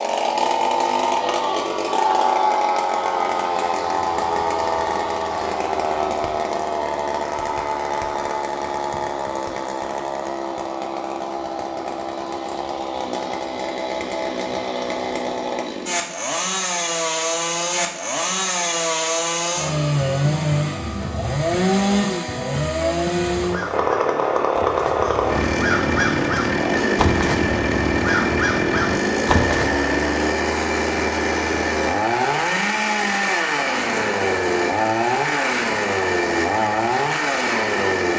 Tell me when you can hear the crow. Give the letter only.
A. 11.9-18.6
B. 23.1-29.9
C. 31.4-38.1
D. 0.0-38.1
B.